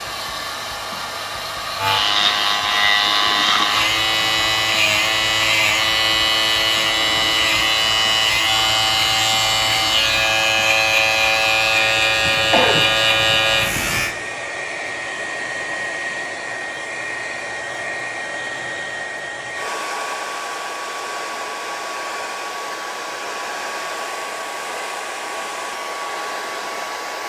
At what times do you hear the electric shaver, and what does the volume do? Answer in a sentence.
The electric shaver can be heard from 1.8 to 14.2 s, at a steady volume.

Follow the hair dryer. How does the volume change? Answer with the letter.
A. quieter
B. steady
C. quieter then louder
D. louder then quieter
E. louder
B.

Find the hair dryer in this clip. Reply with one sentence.
You can hear the hair dryer from 0.0 to 27.2 s.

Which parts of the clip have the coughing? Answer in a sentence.
You can hear the coughing from 12.2 to 14.0 s.